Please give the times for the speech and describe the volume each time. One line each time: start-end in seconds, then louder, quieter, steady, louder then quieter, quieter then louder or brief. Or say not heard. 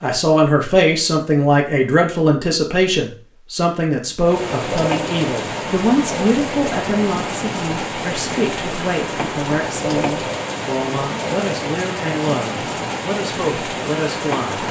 0.0-14.6 quieter.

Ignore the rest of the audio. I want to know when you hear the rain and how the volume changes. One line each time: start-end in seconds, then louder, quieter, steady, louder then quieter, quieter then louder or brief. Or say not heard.
4.2-14.6 steady.